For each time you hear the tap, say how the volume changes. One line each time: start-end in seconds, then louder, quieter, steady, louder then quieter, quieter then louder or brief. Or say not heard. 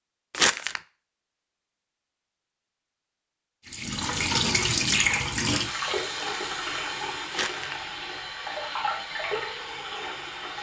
3.6-10.5 quieter.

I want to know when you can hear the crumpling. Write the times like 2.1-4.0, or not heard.
0.3-0.8, 7.3-7.8.